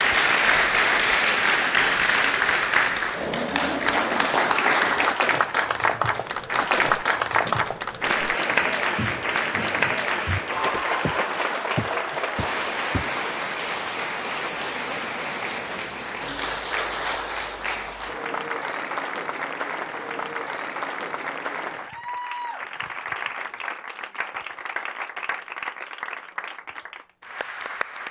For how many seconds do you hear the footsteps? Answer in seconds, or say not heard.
7 s.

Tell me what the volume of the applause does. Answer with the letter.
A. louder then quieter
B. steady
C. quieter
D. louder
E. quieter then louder
C.